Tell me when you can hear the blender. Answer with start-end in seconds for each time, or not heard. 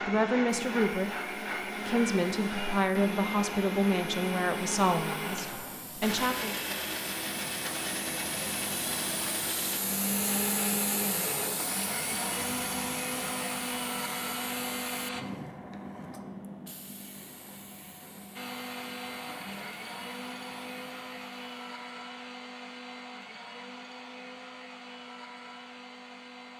0.0-15.2, 18.4-26.5.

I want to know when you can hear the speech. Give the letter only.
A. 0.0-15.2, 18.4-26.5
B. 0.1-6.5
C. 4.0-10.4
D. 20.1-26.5
B.